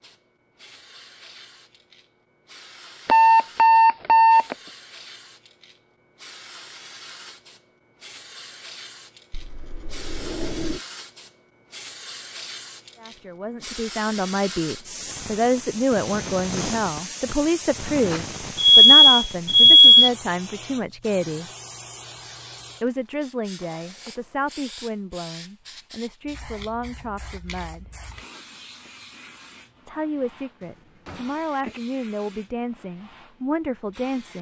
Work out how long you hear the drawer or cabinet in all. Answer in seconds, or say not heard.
2 s.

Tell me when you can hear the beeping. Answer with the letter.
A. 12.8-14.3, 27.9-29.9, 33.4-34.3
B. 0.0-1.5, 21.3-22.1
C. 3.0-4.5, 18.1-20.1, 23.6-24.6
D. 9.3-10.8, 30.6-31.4
C.